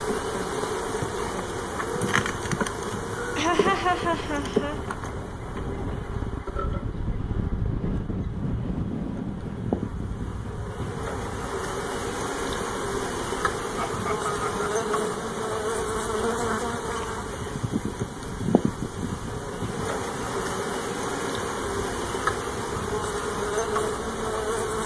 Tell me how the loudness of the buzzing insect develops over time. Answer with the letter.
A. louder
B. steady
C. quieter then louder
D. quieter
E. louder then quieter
C.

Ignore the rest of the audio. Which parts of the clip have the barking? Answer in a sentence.
The barking can't be heard in this clip.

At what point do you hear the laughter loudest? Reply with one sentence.
The volume of the laughter peaks at 4 seconds.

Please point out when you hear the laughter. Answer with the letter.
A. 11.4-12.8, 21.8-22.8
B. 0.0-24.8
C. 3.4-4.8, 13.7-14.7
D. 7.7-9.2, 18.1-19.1
C.